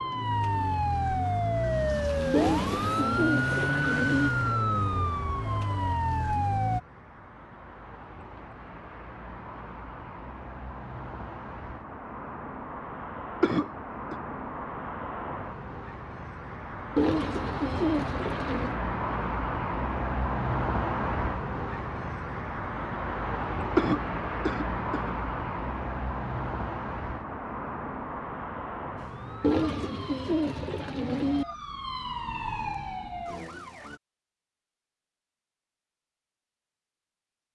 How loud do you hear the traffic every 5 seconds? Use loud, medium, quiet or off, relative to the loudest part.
quiet, quiet, medium, loud, loud, loud, off, off.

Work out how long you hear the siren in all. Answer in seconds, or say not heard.
12 s.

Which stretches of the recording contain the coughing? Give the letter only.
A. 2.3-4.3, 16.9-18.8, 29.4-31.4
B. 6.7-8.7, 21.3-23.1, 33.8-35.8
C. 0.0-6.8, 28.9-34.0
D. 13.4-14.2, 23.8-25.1
D.